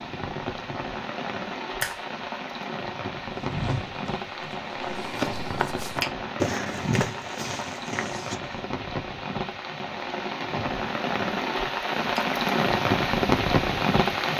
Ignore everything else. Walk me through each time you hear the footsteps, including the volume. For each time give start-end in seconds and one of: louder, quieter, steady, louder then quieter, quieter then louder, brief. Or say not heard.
3.4-8.7 louder then quieter.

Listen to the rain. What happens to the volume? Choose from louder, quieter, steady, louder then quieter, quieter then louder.
louder.